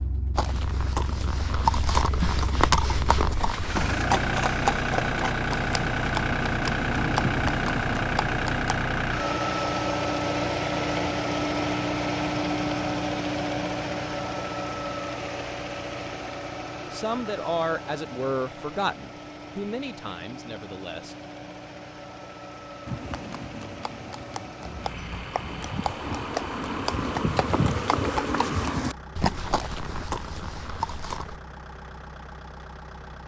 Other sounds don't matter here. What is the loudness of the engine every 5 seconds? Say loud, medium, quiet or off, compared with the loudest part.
medium, loud, loud, medium, quiet, quiet, quiet.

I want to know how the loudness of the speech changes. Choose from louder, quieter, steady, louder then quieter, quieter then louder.
quieter.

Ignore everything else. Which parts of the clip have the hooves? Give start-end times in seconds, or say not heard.
0.3-8.8, 22.9-31.4.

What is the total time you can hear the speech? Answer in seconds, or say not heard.
4 s.